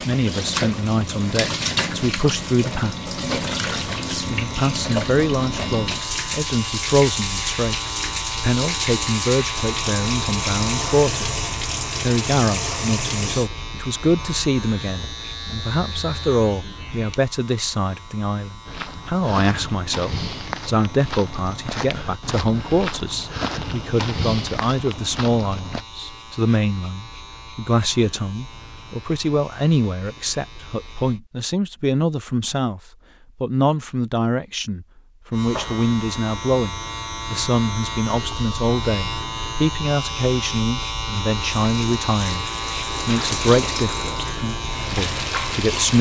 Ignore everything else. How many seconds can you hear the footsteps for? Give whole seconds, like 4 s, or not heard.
7 s.